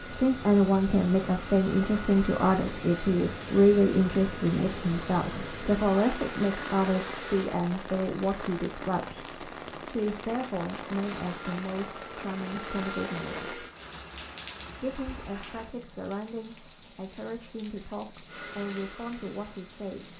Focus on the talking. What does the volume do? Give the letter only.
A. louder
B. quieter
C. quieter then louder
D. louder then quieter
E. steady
B.